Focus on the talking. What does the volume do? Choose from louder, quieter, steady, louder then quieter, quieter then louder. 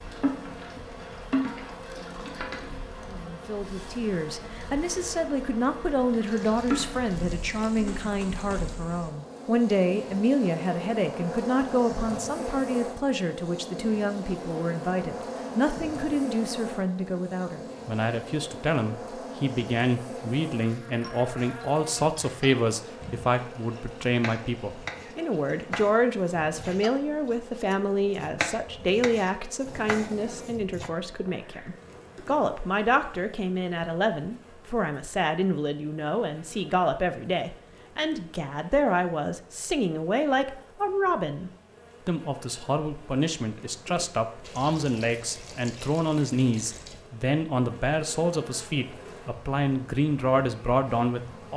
steady.